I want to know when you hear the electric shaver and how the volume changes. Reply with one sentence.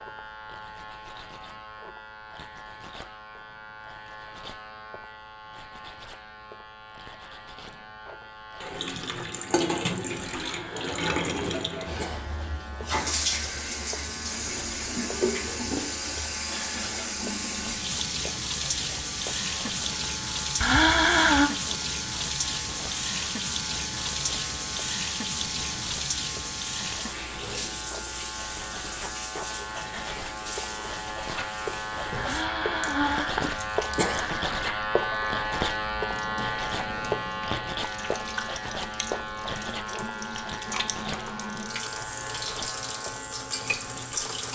The electric shaver can be heard from 0.0 to 44.5 s, getting louder.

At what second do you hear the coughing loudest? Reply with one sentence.
The volume of the coughing peaks at 21 seconds.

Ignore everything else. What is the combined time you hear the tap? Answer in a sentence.
You can hear the tap for 36 seconds altogether.